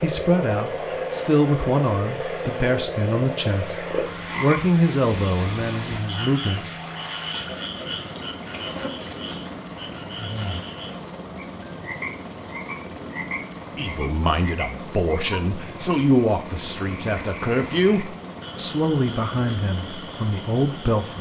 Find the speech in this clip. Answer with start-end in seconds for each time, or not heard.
0.0-6.9, 13.8-21.1.